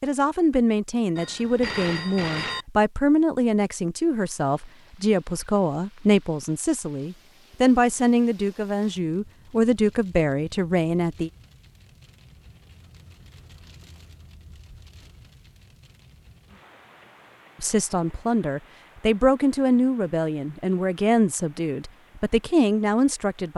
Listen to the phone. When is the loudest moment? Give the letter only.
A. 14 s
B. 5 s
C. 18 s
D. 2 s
D.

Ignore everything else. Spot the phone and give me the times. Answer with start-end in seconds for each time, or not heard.
1.1-2.6.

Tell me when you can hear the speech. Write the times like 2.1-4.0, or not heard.
0.0-11.3, 17.6-23.5.